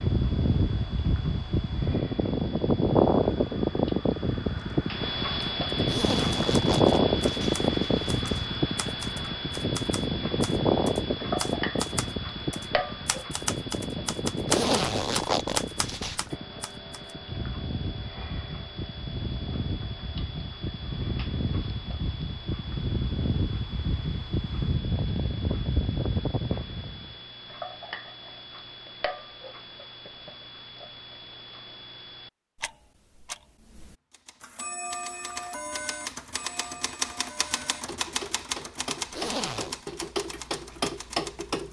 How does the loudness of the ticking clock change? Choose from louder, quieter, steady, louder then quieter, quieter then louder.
quieter then louder.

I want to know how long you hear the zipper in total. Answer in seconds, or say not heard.
5 s.